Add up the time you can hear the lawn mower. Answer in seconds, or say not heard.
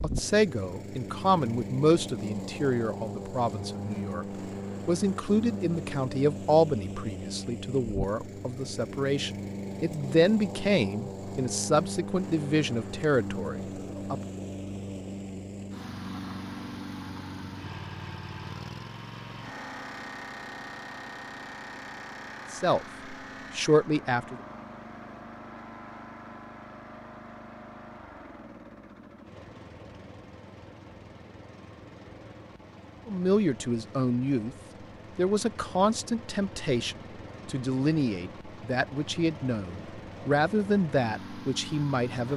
42 s.